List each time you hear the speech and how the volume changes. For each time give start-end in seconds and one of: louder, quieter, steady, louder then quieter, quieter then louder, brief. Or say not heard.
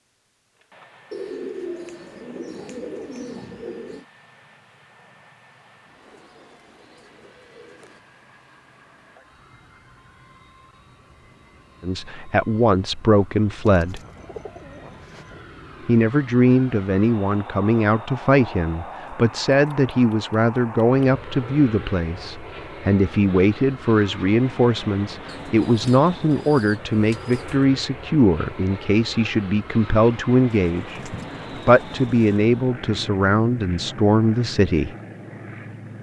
11.8-14.0 brief
15.8-35.0 steady.